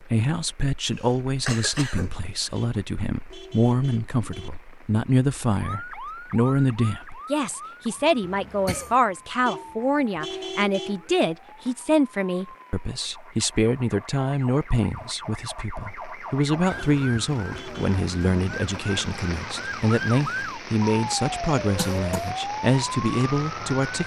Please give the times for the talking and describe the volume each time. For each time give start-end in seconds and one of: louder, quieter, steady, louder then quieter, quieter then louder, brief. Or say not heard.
0.0-24.0 steady.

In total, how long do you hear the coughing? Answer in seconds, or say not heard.
3 s.